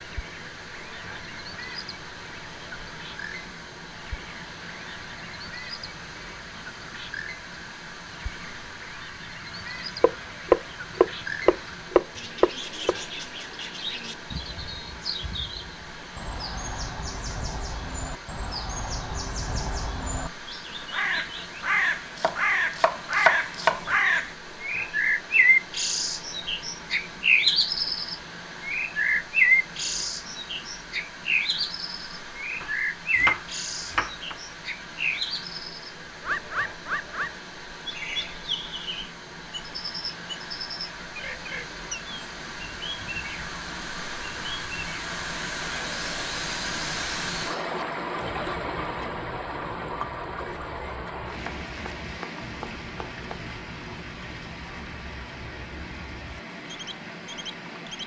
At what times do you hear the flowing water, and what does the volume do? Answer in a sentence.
The flowing water can be heard from 0.0 to 58.0 s, getting louder.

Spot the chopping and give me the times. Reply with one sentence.
You can hear the chopping from 10.0 to 12.9 s, from 22.1 to 23.9 s, from 32.6 to 34.4 s and from 51.5 to 53.5 s.